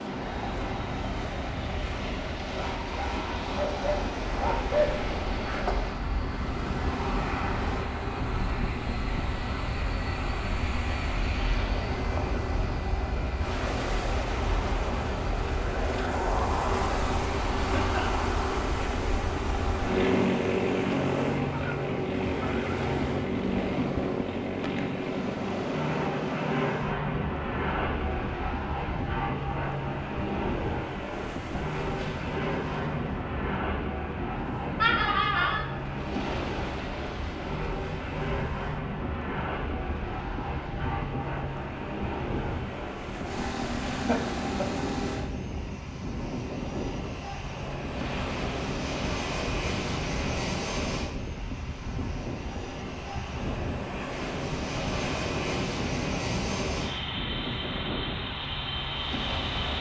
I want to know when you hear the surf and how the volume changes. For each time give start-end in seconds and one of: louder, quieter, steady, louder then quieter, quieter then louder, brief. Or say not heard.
0.0-59.7 steady.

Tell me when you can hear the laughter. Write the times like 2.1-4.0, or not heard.
17.6-18.2, 34.8-35.6, 43.9-44.9.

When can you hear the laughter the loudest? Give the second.
35 s.